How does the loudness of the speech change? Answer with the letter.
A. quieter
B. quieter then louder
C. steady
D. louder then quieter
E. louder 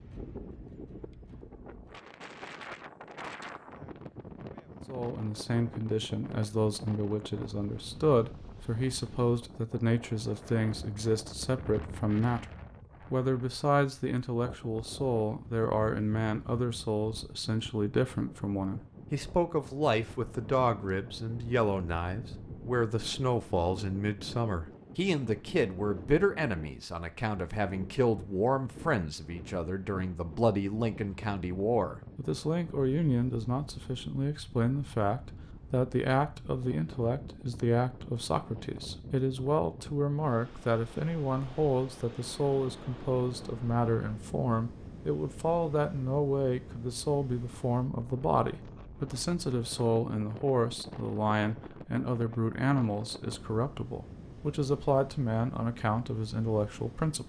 C.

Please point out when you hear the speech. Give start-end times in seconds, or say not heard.
4.8-57.2.